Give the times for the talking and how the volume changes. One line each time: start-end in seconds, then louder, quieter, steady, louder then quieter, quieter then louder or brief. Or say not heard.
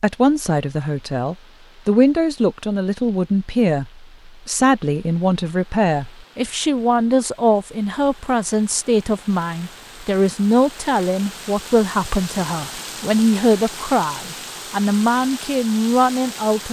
0.0-16.6 steady.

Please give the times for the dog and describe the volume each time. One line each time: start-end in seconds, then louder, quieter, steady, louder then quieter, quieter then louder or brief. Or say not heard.
not heard.